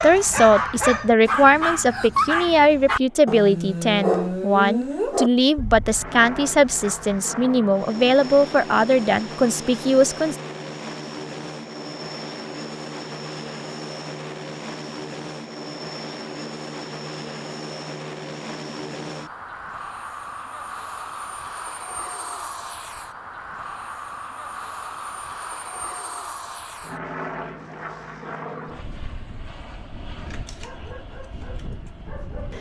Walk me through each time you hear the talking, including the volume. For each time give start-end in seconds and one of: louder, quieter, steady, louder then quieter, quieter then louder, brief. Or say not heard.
0.0-10.3 steady.